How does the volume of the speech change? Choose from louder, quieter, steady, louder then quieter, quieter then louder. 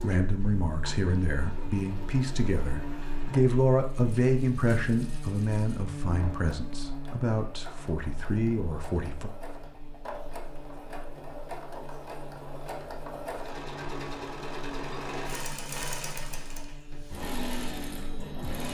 louder then quieter.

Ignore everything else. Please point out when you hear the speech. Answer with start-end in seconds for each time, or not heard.
0.0-9.3.